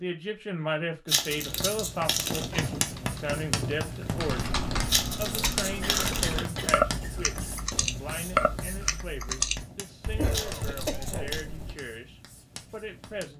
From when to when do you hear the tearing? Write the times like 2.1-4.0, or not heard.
1.1-2.6, 4.8-6.4, 10.3-11.4.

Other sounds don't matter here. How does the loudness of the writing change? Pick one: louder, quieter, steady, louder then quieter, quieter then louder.
quieter.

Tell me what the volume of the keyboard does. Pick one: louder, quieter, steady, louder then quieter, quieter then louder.
louder then quieter.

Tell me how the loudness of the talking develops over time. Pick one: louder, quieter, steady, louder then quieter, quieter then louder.
quieter.